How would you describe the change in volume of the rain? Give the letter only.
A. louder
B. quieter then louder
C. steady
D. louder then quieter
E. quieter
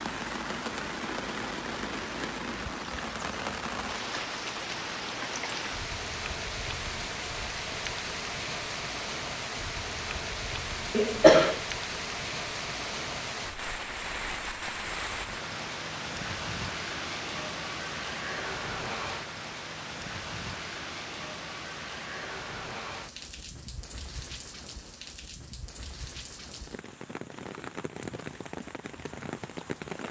E.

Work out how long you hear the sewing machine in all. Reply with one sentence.
The sewing machine can't be heard in this clip.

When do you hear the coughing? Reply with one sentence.
The coughing can be heard from 10.9 to 11.6 s.